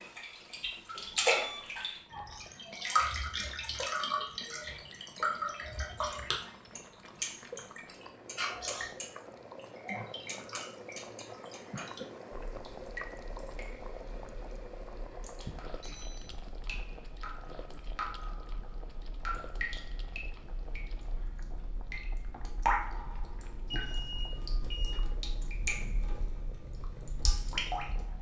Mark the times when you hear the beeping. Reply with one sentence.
You can hear the beeping from 1.1 to 1.7 s, from 15.8 to 16.4 s and from 23.6 to 25.0 s.